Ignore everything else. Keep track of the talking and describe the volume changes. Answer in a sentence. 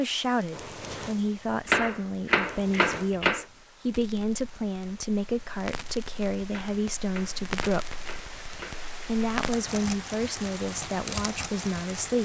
The loudness of the talking stays about the same.